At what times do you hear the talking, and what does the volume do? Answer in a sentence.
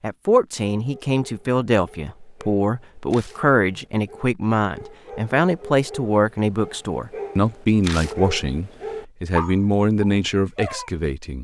You can hear the talking from 0.0 to 11.3 s, at a steady volume.